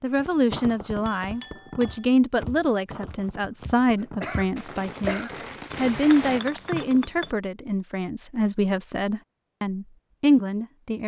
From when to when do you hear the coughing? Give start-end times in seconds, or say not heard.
4.0-5.3.